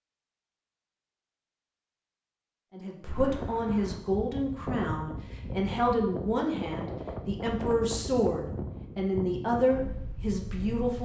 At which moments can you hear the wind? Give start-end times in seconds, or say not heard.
3.0-10.9.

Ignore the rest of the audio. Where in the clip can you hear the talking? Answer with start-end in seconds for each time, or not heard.
2.7-10.9.